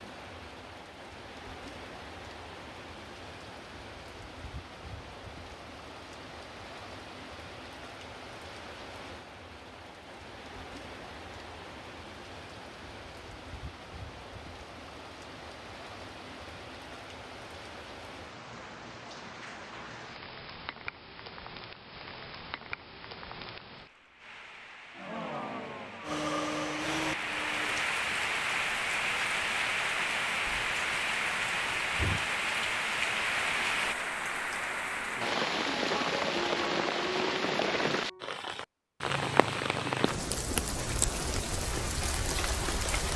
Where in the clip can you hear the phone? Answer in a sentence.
The phone can't be heard in this clip.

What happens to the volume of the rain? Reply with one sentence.
The volume of the rain goes up.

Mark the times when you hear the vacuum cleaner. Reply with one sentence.
The vacuum cleaner can be heard from 26.1 to 27.9 s.